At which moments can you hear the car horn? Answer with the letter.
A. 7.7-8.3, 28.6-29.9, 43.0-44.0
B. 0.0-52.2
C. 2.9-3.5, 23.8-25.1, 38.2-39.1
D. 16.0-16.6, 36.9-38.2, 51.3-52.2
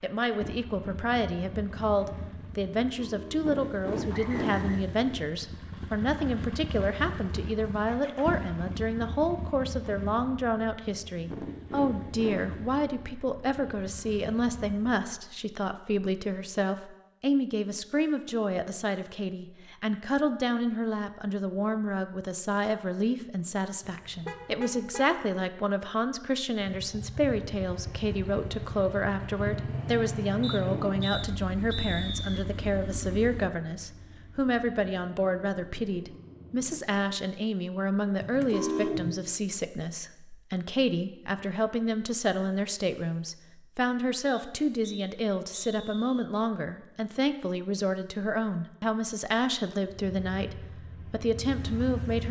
C.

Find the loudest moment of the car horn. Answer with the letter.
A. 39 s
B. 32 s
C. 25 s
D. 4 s
A.